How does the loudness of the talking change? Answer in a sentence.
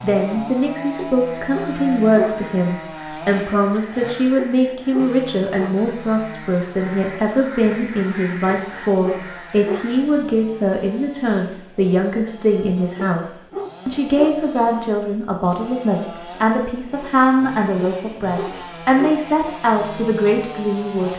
The loudness of the talking stays about the same.